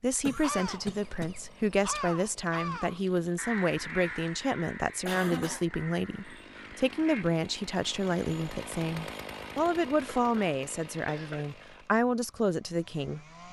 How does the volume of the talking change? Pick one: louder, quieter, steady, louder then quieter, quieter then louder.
steady.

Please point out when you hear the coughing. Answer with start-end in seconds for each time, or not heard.
0.2-1.6, 5.0-5.7, 10.1-11.4.